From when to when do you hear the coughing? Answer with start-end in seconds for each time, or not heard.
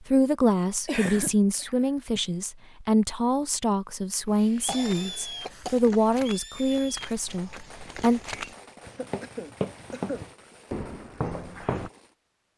0.8-2.2, 4.2-5.9, 8.8-10.3.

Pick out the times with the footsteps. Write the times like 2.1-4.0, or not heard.
4.7-11.9.